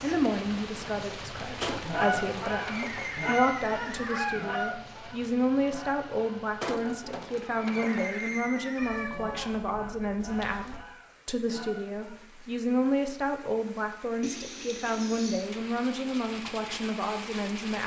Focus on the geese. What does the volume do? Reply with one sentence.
The loudness of the geese goes down.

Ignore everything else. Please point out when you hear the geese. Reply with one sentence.
You can hear the geese from 1.8 to 12.3 s.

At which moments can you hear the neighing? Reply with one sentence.
You can hear the neighing from 1.6 to 4.3 s, from 6.6 to 9.1 s and from 14.2 to 15.5 s.